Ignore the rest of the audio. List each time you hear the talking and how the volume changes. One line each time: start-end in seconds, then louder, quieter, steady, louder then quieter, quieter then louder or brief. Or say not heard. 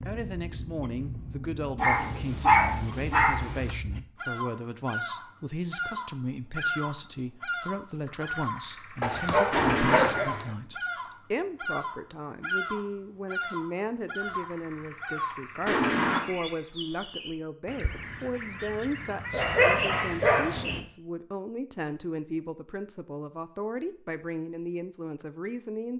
0.0-25.9 steady.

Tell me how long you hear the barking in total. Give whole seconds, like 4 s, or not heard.
5 s.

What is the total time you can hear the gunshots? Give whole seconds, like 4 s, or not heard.
4 s.